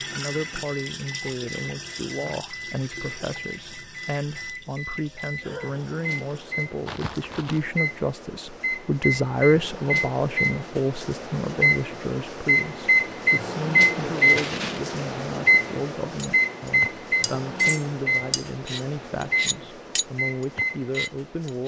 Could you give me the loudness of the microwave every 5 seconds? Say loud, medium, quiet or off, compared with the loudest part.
quiet, medium, loud, loud, medium.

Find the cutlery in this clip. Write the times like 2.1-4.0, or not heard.
16.1-21.6.